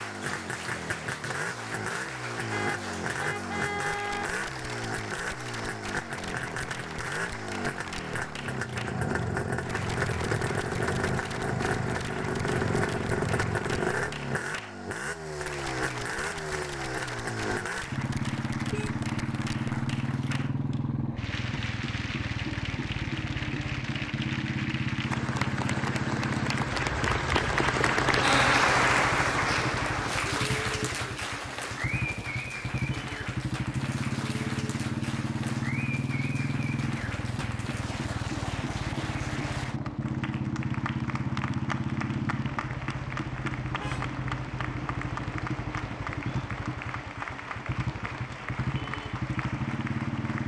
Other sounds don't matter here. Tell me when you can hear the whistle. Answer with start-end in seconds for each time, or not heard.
not heard.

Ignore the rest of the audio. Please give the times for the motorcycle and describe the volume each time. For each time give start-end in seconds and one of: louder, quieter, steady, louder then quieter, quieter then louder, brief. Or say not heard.
0.0-50.4 steady.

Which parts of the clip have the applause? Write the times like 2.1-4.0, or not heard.
0.0-50.4.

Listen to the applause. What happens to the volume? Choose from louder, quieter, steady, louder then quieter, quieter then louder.
louder then quieter.